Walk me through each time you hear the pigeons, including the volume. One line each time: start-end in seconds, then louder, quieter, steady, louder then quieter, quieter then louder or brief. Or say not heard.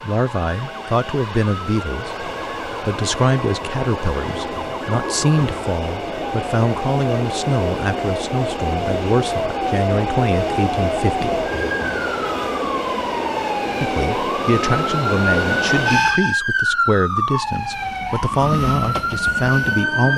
not heard.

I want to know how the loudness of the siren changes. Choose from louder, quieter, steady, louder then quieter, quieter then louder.
louder.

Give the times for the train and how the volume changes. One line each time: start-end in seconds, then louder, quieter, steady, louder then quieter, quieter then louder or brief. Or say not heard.
0.0-16.4 louder
17.4-20.1 brief.